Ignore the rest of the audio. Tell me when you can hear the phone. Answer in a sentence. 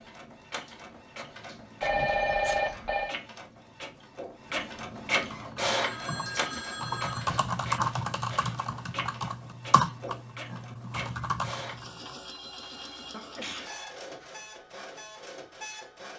The phone can be heard from 1.8 to 3.1 s, from 5.8 to 7.3 s and from 12.2 to 13.2 s.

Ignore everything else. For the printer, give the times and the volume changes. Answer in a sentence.
You can hear the printer from 0.0 to 16.1 s, getting louder then quieter.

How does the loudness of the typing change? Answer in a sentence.
The loudness of the typing goes up, then down.